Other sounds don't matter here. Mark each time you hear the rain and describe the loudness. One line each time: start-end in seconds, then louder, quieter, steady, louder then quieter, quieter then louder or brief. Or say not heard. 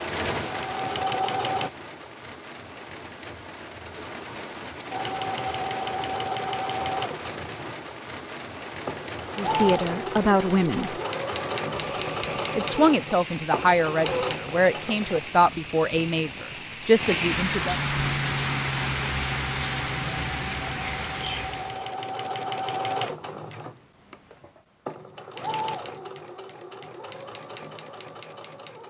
0.0-21.9 louder.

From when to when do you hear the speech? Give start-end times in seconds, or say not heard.
9.4-10.9, 12.6-17.8.